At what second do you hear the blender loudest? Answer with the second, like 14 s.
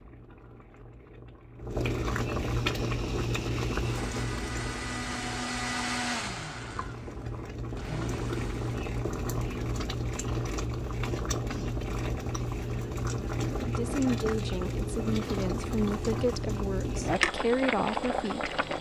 6 s.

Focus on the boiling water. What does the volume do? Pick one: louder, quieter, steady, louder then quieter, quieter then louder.
quieter then louder.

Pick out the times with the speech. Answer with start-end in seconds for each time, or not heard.
13.6-18.6.